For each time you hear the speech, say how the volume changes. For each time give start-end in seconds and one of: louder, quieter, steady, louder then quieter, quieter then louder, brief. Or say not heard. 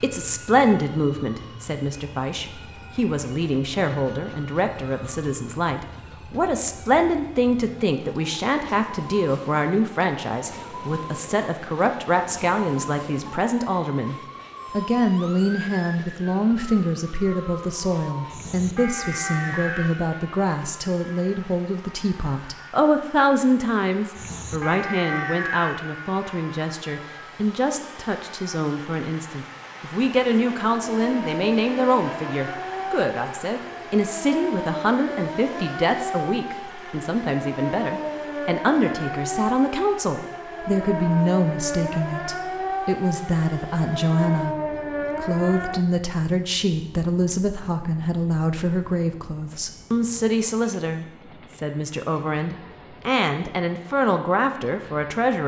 0.0-55.4 steady.